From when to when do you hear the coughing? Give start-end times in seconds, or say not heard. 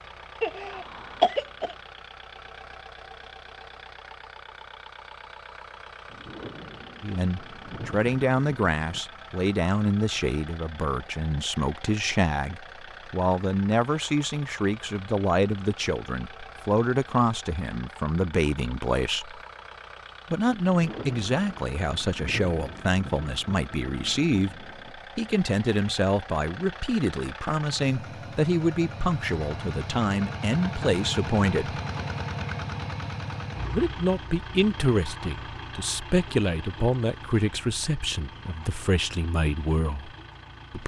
0.4-1.8.